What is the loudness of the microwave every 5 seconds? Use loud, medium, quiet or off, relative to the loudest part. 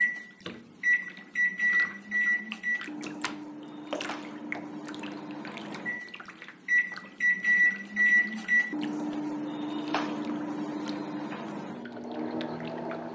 loud, loud, medium.